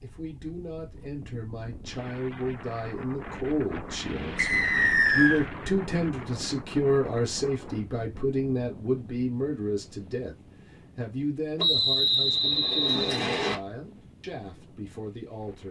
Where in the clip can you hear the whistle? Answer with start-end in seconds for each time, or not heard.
4.3-5.4, 11.6-13.6.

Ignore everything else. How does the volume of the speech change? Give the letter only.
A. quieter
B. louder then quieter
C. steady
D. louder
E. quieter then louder
B.